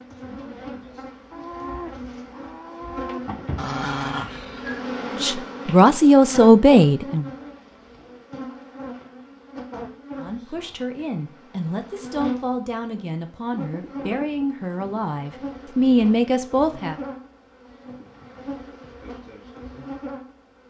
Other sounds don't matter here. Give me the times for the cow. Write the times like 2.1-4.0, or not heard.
1.3-3.2.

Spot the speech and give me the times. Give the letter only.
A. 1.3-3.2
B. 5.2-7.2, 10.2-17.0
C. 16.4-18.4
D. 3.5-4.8
B.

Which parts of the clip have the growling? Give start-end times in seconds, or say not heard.
3.5-4.8.